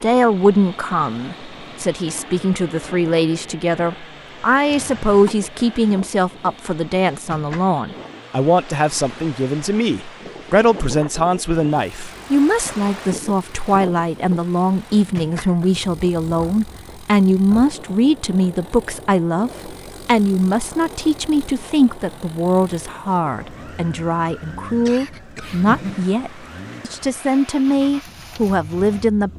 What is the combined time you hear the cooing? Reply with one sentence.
The cooing can't be heard in this clip.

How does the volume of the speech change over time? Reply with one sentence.
The loudness of the speech stays about the same.